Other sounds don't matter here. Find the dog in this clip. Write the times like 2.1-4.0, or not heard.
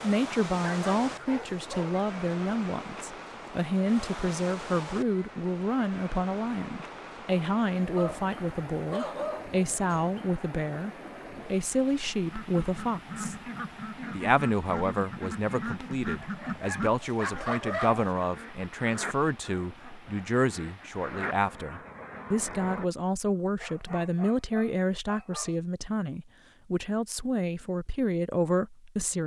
0.6-2.0, 8.0-10.0, 16.2-18.1, 23.6-25.6.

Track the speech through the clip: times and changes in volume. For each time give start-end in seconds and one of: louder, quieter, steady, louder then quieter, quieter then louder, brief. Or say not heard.
0.0-13.3 steady
14.1-29.2 steady.